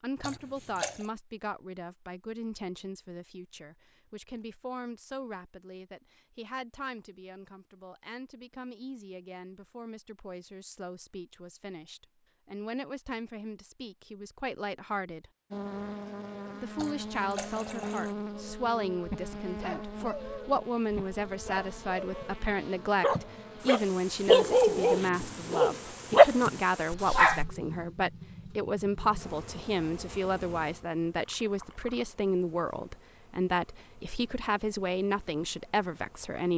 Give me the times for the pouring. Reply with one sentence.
The pouring can be heard from 0.2 to 1.1 s, from 16.8 to 18.1 s and from 31.4 to 32.1 s.